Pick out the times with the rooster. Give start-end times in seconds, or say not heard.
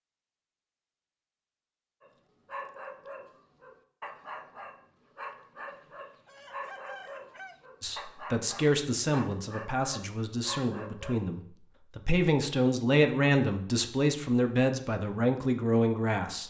5.7-7.6.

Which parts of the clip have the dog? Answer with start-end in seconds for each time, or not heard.
2.0-11.2.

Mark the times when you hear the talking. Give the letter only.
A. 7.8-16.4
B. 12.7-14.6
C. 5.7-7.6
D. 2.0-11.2
A.